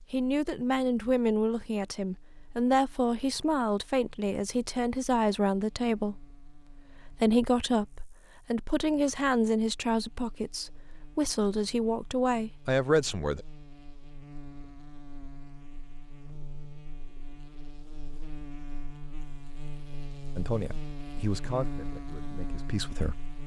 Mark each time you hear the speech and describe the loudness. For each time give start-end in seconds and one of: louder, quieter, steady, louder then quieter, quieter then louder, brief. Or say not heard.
0.1-13.4 steady
20.4-23.2 brief.